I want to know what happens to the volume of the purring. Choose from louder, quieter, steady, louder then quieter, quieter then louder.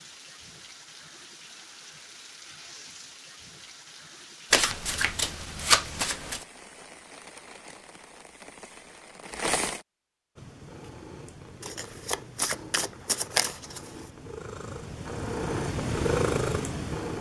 louder.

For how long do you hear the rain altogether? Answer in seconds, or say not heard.
10 s.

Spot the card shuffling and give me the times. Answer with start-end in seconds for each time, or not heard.
4.5-6.5, 11.6-13.9.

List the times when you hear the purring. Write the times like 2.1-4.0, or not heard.
10.3-17.1.